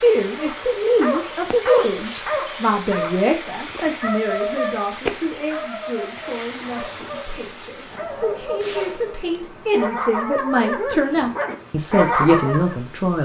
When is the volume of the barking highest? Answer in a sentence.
The loudest moment of the barking is at 12 seconds.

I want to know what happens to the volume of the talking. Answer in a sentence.
The volume of the talking goes down, then up.